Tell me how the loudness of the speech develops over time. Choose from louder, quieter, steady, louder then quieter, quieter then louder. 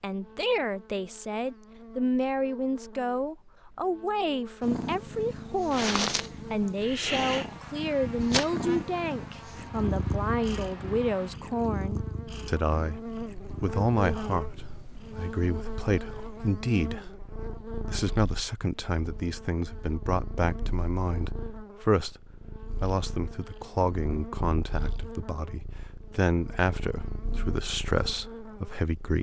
steady.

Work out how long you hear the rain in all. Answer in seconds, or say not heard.
not heard.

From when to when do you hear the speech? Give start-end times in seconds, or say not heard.
0.0-22.2, 22.8-29.1.